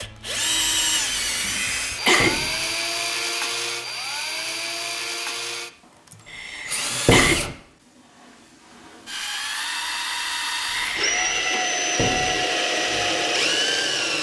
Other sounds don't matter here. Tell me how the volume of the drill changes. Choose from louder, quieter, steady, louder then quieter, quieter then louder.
quieter then louder.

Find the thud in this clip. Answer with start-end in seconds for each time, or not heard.
2.2-2.6, 7.0-7.5, 11.9-12.4.